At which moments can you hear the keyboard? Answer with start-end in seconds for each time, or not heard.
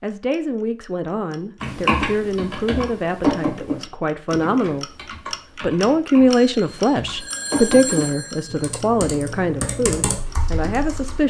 1.6-11.2.